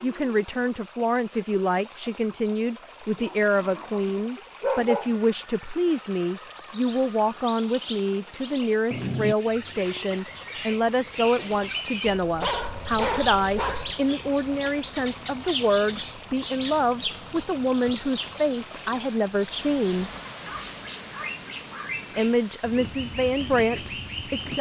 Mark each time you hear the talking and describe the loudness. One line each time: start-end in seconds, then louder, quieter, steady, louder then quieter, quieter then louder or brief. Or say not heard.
0.0-20.1 steady
22.1-24.5 brief.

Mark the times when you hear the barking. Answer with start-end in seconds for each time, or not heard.
3.1-5.2, 12.1-13.9, 20.1-21.9.